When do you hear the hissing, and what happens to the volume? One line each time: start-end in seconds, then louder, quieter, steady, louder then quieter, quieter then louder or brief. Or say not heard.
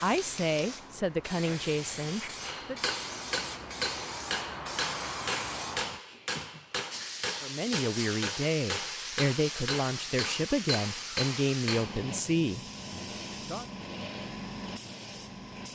0.0-15.7 steady.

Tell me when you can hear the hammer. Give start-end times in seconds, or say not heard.
2.4-12.1.